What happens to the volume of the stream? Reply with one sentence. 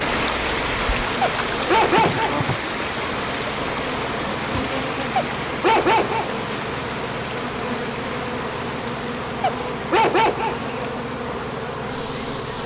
The loudness of the stream goes down.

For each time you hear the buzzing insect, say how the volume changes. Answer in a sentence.
The buzzing insect can be heard from 0.0 to 12.6 s, at a steady volume.